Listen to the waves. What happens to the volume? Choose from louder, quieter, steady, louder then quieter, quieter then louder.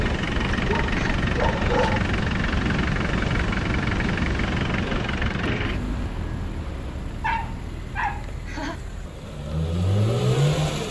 quieter.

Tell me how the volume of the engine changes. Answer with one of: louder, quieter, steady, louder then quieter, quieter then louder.
quieter then louder.